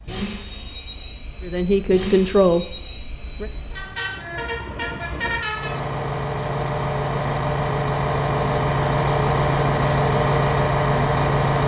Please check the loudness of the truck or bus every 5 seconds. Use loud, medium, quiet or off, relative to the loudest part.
quiet, loud, loud.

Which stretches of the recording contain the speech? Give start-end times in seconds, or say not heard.
1.4-3.5.